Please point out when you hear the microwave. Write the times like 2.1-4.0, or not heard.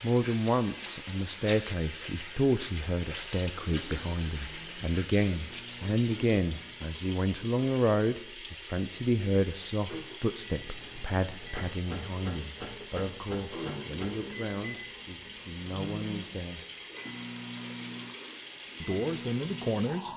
4.3-6.9, 10.4-20.1.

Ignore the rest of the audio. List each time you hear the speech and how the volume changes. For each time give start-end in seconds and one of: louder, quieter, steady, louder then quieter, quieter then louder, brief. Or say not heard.
0.0-16.6 quieter
18.8-20.1 brief.